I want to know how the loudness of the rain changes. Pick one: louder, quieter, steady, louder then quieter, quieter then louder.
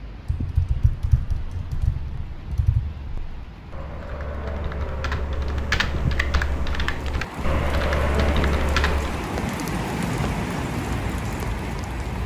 louder.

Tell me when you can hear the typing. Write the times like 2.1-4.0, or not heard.
0.2-9.2.